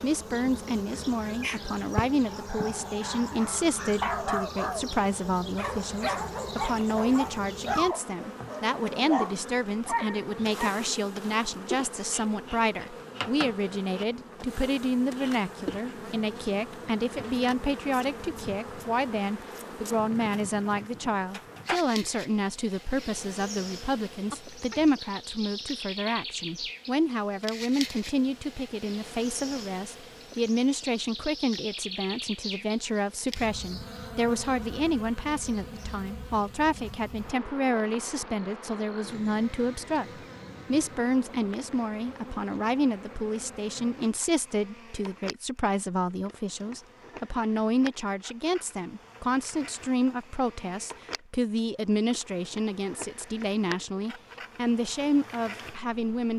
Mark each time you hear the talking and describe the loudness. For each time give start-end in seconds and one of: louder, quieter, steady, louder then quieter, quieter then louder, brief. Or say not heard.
0.0-56.3 steady.